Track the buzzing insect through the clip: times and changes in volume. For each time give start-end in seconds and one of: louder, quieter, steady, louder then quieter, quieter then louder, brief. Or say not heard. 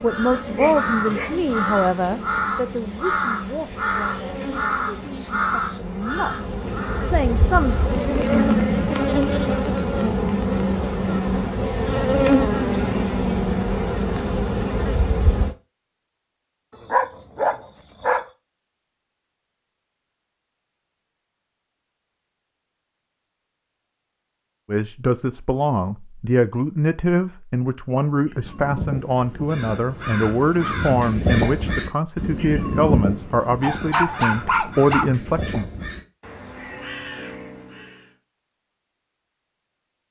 0.0-15.6 louder.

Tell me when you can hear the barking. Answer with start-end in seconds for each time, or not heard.
0.6-2.1, 16.8-18.2, 33.6-35.0.